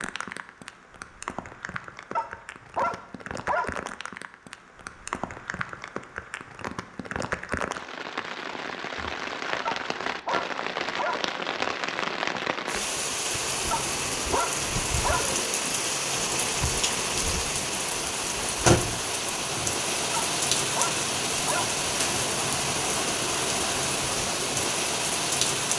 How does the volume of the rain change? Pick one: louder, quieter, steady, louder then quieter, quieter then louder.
louder.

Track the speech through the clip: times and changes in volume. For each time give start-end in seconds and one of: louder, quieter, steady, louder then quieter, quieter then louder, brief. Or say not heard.
not heard.